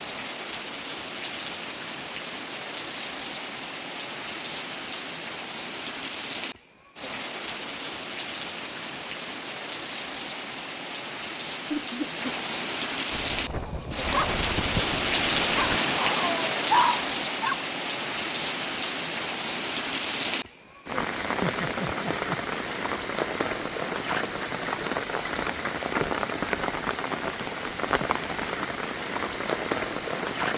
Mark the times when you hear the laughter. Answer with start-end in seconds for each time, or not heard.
11.7-12.2, 21.4-22.4.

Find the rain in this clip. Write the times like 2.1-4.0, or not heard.
0.0-30.5.